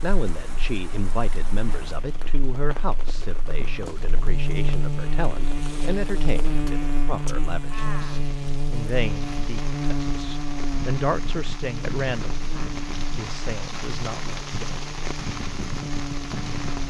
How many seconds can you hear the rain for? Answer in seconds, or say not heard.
17 s.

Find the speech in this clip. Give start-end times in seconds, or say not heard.
0.0-12.4, 13.2-14.8.